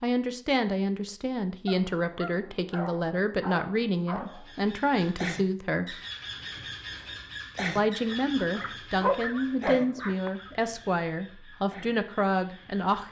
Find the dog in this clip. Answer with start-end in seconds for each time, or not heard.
1.6-4.5, 8.1-10.5.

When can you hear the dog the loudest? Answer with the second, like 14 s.
9 s.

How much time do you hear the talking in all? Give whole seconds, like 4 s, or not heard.
11 s.